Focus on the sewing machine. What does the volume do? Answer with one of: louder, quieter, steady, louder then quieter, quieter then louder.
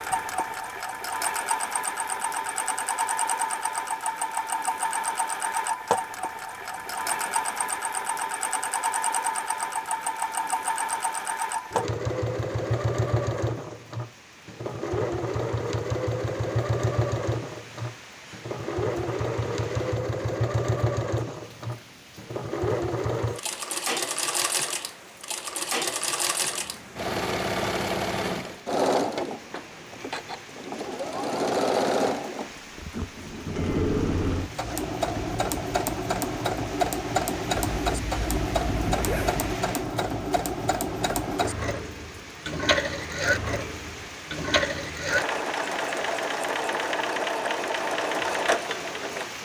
steady.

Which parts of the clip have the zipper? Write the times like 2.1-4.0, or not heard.
37.5-39.5.